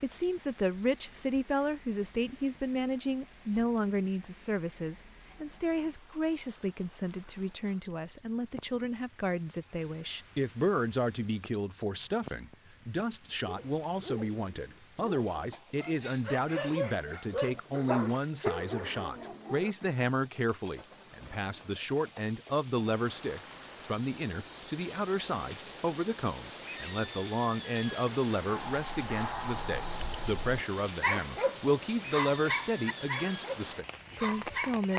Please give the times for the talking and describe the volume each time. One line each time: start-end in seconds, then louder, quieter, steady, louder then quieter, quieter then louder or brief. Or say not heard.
0.0-34.9 steady.